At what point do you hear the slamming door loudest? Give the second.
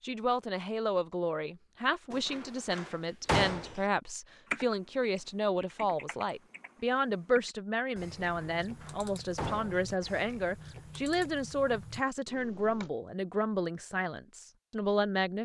3 s.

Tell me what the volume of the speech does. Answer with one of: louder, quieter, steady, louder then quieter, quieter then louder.
steady.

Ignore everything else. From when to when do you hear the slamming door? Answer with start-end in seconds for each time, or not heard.
2.1-3.8, 8.2-9.9.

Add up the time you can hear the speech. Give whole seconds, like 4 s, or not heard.
15 s.